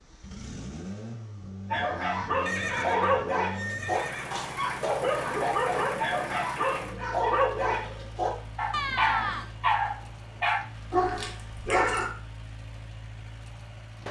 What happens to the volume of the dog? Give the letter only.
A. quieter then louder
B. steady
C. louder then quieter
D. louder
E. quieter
B.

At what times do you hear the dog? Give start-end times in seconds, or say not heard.
1.7-12.1.